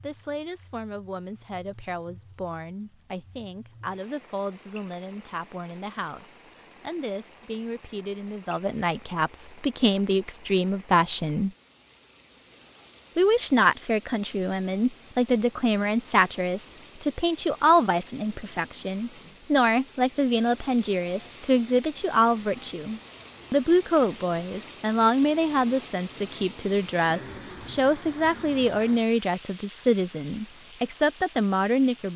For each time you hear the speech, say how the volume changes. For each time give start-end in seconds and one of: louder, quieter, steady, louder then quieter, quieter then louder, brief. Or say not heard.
0.0-11.5 louder
13.2-32.1 steady.